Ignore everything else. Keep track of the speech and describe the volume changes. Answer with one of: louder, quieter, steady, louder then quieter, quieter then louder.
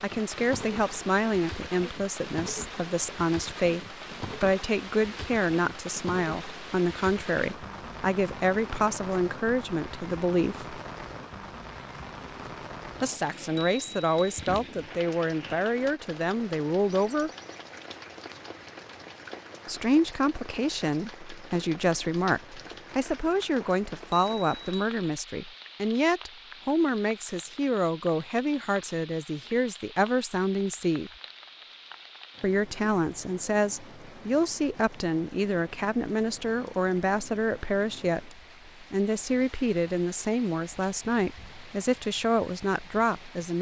steady.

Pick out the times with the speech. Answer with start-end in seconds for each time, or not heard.
0.0-10.8, 13.0-17.3, 19.6-31.1, 32.4-43.5.